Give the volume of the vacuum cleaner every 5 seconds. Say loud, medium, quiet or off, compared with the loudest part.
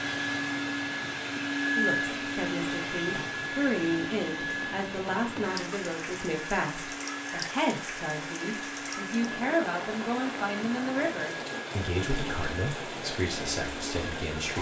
loud, medium, medium.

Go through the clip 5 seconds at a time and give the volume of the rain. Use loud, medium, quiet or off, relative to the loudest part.
medium, loud, loud.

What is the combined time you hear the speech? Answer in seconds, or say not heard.
13 s.